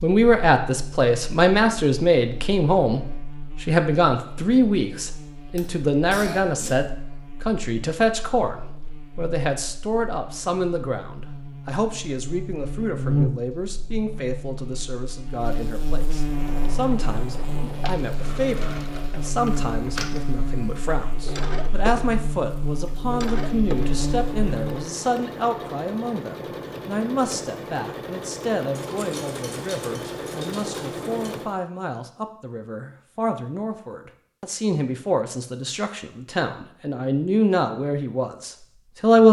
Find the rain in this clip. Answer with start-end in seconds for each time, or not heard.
not heard.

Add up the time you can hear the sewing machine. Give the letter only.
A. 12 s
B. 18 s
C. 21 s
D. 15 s
D.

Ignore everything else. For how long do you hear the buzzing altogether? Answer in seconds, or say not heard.
25 s.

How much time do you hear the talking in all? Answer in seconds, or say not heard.
39 s.